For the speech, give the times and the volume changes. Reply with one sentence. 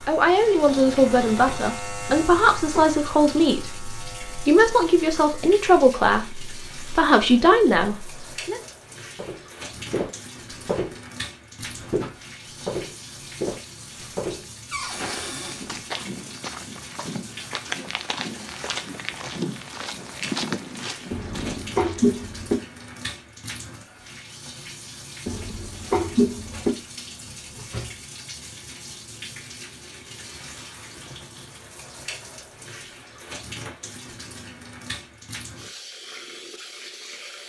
The speech can be heard from 0.1 to 8.6 s, at a steady volume.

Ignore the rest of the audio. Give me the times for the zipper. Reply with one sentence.
The zipper can't be heard in this clip.